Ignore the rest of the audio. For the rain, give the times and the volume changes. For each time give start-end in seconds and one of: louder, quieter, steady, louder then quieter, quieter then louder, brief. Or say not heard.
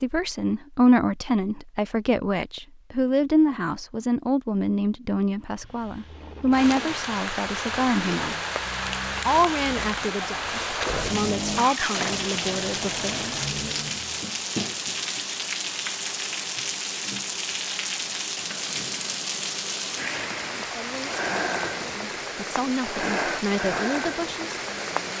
6.5-25.1 steady.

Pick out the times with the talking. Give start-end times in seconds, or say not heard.
0.0-8.3, 9.2-13.3, 20.6-25.1.